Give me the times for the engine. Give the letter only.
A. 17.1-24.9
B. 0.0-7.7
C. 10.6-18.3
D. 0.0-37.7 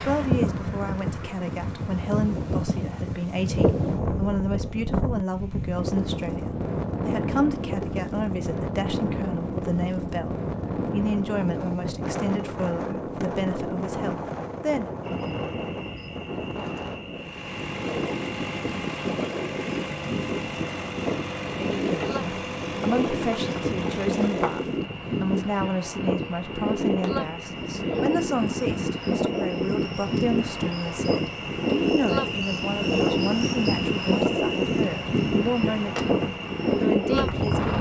A.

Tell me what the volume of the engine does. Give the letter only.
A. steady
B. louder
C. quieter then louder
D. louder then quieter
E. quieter
A.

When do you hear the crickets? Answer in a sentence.
You can hear the crickets from 15.0 to 37.7 s.